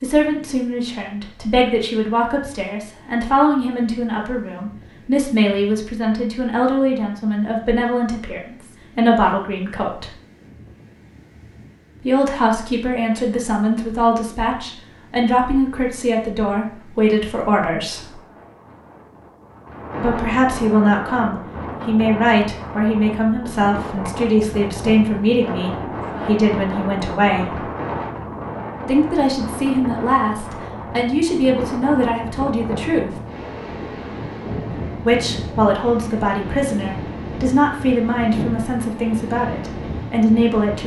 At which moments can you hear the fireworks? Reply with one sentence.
The fireworks can't be heard in this clip.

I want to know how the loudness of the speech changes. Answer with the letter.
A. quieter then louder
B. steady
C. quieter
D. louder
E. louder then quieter
B.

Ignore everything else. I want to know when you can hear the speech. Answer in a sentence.
The speech can be heard from 0.0 to 10.1 s, from 12.0 to 18.1 s, from 20.0 to 27.6 s, from 28.9 to 33.1 s and from 35.0 to 40.8 s.